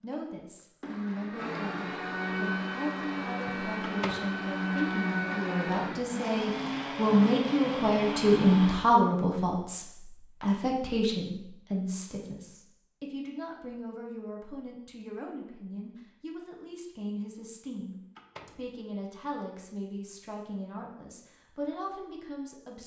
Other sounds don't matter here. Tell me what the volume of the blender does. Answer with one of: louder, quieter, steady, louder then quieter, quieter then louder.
steady.